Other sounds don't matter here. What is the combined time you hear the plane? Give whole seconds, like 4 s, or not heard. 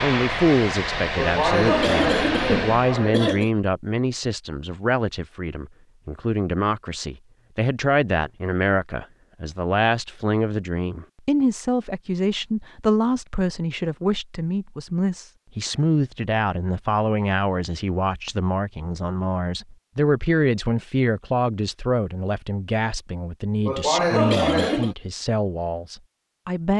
3 s.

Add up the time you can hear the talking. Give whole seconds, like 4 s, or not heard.
27 s.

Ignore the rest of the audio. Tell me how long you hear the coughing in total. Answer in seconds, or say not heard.
4 s.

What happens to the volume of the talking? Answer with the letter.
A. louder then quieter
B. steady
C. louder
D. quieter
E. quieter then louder
B.